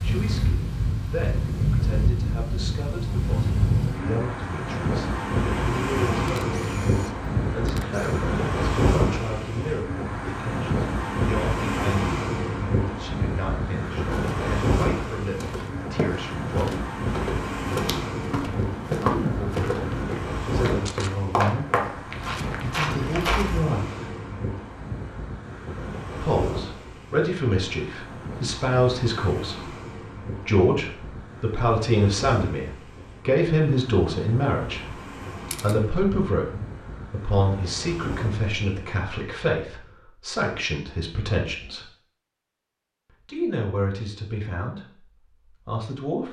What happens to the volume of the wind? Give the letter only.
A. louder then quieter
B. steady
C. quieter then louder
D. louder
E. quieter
E.